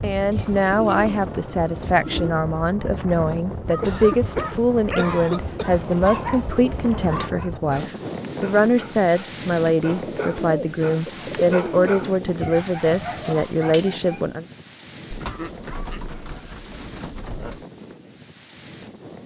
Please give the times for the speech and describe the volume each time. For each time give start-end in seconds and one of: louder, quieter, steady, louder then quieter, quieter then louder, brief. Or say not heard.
0.0-14.4 steady.